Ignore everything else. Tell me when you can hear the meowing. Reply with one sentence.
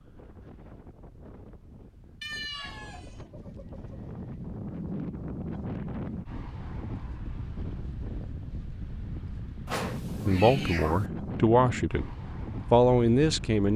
You can hear the meowing from 2.2 to 3.2 s and from 9.7 to 11.1 s.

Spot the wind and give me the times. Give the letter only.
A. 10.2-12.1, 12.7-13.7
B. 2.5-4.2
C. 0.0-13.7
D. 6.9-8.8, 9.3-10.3
C.